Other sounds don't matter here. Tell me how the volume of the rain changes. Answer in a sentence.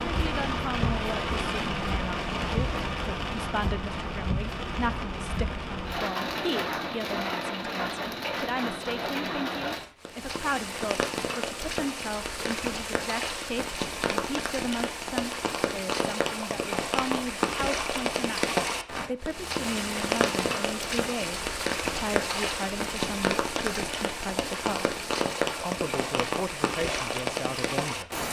The volume of the rain stays about the same.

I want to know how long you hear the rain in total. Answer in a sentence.
The rain can be heard for 28 seconds in total.